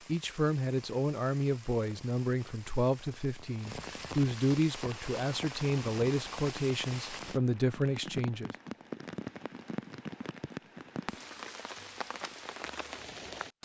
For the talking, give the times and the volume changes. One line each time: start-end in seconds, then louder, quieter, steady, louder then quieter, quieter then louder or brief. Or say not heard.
0.1-8.5 steady.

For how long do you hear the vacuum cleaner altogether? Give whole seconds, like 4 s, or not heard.
not heard.